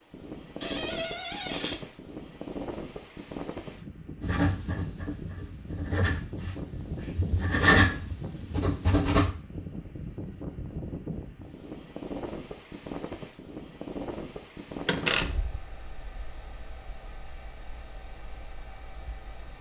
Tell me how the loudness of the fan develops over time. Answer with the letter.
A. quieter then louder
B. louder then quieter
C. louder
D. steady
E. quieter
E.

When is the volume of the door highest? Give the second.
15 s.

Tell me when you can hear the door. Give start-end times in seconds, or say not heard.
0.6-1.8, 14.8-15.6.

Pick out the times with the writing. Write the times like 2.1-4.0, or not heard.
4.2-9.3.